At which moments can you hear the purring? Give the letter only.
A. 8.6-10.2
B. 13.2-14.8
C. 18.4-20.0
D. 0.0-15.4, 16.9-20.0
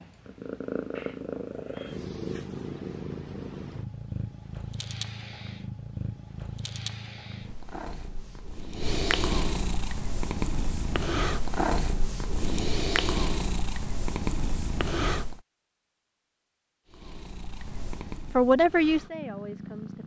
D.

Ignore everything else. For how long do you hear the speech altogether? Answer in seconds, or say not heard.
2 s.